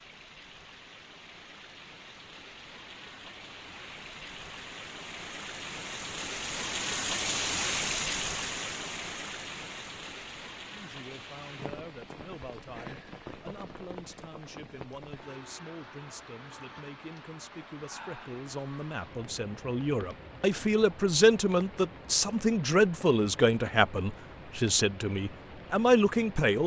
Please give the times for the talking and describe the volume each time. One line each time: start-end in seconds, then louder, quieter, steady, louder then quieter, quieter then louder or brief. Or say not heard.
10.7-26.6 louder.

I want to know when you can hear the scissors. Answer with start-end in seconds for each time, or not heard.
not heard.